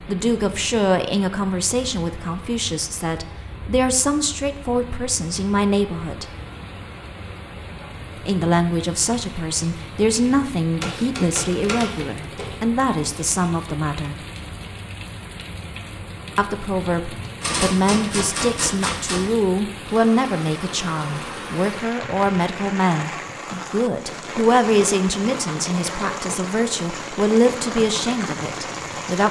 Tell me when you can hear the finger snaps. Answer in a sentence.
The finger snaps can't be heard in this clip.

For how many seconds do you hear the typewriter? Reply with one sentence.
The typewriter can be heard for 4 seconds in total.